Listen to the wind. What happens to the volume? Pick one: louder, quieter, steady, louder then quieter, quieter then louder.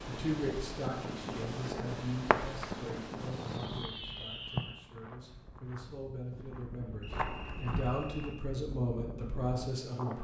quieter then louder.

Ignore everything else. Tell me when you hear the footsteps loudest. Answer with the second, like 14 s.
7 s.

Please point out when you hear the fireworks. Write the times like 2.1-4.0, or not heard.
2.3-4.8.